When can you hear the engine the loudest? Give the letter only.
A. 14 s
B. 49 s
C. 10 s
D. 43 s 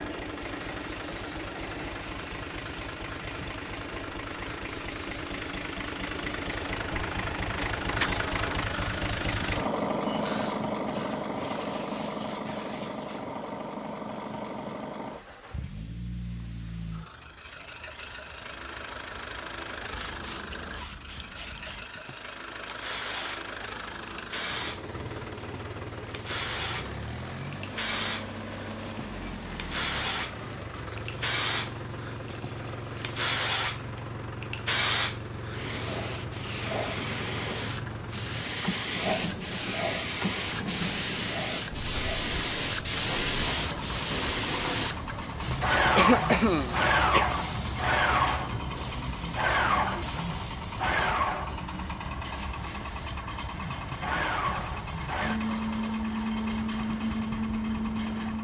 C.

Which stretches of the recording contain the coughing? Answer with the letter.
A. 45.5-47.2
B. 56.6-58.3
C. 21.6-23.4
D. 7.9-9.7
A.